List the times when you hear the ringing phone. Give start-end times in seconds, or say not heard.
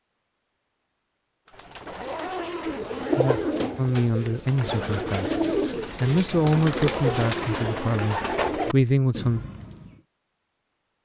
not heard.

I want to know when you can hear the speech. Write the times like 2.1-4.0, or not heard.
3.8-9.4.